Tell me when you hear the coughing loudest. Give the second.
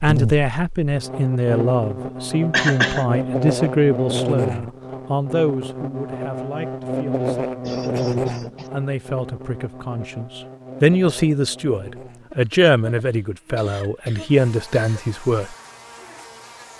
3 s.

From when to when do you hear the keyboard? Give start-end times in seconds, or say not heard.
not heard.